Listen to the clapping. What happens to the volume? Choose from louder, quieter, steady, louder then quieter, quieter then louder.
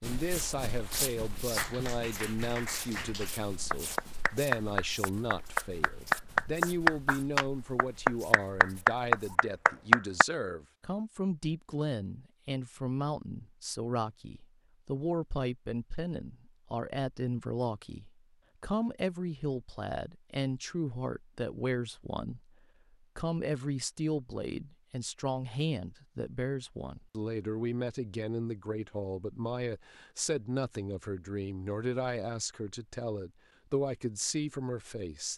louder.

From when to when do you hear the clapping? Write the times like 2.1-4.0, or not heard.
1.6-10.2.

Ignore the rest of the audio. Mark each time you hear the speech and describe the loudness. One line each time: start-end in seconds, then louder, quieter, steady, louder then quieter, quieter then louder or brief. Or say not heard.
0.0-35.3 steady.